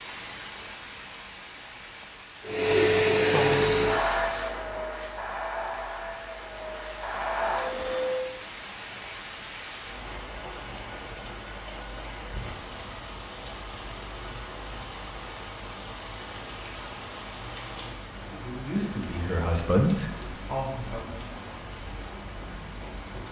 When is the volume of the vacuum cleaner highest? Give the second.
3 s.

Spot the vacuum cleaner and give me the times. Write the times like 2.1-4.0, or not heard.
2.5-8.3.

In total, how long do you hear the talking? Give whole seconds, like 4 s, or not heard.
3 s.